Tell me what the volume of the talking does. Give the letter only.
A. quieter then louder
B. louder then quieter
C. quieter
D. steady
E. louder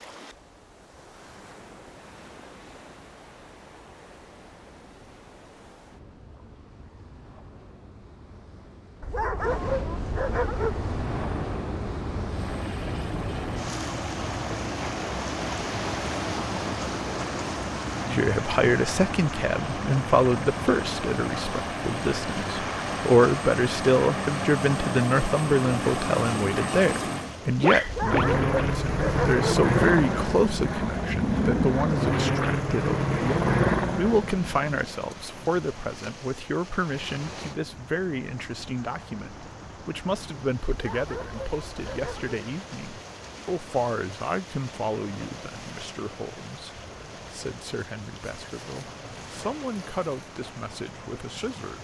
C.